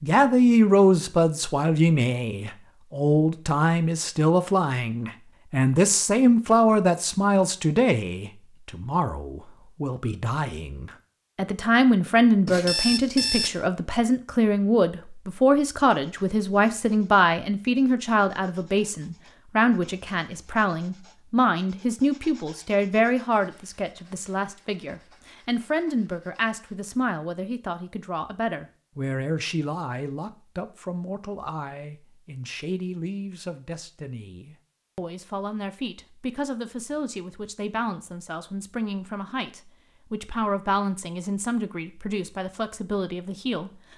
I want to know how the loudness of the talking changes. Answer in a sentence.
The loudness of the talking goes down.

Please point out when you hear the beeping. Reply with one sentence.
The beeping can be heard from 12.4 to 13.7 s.